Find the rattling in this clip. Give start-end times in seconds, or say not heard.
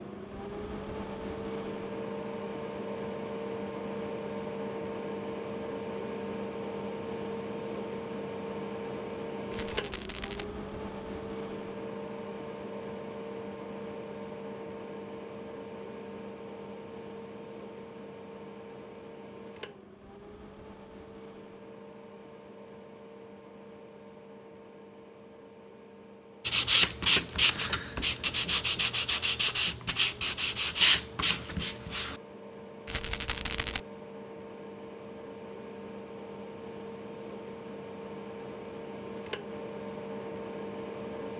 9.5-10.4, 32.9-33.8.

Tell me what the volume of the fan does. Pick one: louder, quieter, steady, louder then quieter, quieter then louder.
quieter then louder.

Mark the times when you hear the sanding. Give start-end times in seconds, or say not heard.
26.4-32.1.